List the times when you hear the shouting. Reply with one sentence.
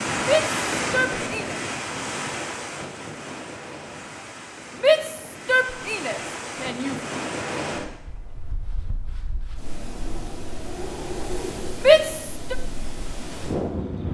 The shouting can be heard from 0.2 to 1.6 s, from 4.8 to 7.0 s and from 11.8 to 12.6 s.